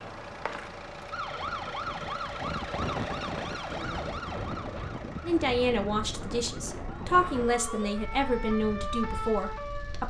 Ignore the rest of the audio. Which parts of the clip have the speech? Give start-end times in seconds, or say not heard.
5.2-10.0.